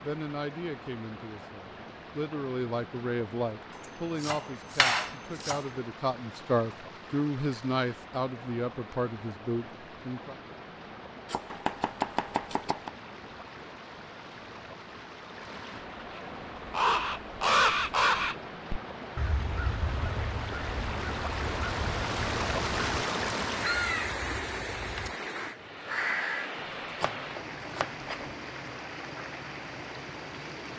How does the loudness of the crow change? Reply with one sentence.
The loudness of the crow goes down, then up.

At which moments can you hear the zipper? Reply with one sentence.
You can't hear the zipper here.